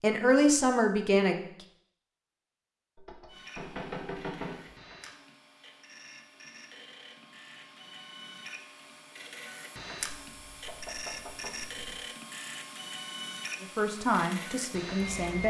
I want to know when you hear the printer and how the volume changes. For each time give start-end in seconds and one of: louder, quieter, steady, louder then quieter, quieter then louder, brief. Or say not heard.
3.2-15.4 louder.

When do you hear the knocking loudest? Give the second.
4 s.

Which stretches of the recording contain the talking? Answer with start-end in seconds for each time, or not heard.
0.0-1.4, 13.6-15.4.